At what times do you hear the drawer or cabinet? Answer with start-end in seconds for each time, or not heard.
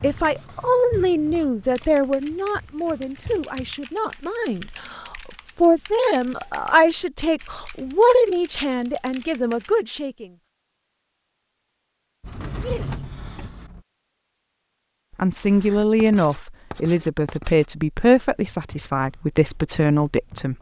12.2-13.8.